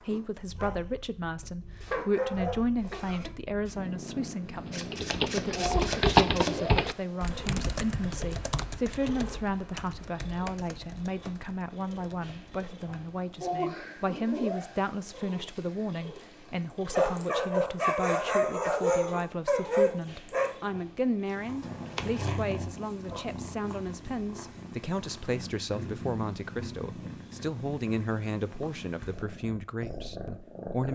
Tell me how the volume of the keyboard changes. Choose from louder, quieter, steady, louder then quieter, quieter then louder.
quieter.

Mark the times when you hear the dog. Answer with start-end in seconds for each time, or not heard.
0.0-0.9, 1.8-3.3, 16.9-20.5.